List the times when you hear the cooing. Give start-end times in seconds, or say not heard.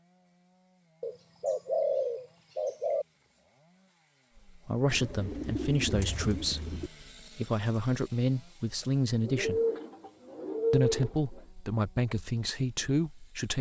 1.0-3.0, 4.9-6.9, 9.2-11.4.